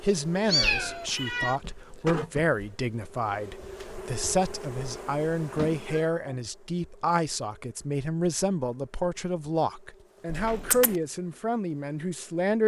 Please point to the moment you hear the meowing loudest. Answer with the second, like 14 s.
1 s.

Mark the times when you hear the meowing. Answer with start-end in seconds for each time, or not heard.
0.5-1.6, 4.9-6.2, 10.2-10.9.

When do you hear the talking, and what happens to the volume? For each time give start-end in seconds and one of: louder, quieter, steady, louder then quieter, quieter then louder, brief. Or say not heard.
0.0-12.6 steady.